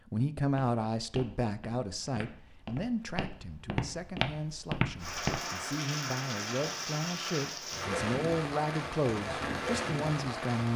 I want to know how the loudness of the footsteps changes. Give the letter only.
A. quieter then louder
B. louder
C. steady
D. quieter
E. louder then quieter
B.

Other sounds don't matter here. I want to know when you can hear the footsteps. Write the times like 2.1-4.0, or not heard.
0.5-5.4.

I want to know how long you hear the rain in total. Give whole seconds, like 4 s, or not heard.
6 s.